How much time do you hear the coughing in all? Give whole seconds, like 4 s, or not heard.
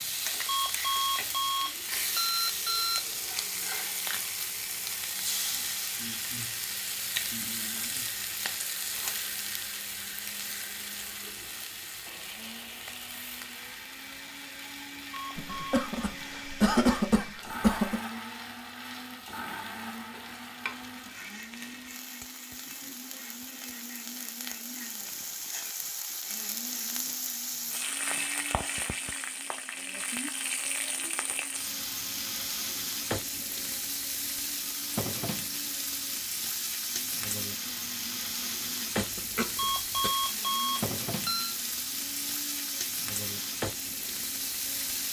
4 s.